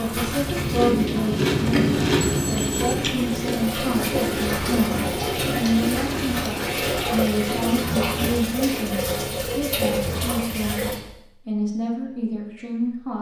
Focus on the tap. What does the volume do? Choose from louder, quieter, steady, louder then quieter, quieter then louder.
louder.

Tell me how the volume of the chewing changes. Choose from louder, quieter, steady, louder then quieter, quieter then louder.
quieter.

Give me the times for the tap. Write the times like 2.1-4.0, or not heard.
0.0-11.0.